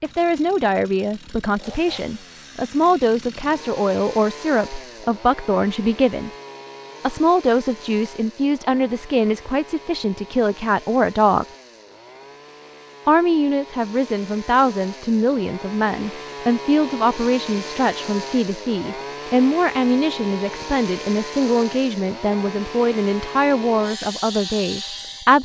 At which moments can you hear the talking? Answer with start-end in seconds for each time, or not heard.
0.0-6.3, 7.0-11.4, 13.1-25.4.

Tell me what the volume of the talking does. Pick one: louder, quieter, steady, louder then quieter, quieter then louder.
steady.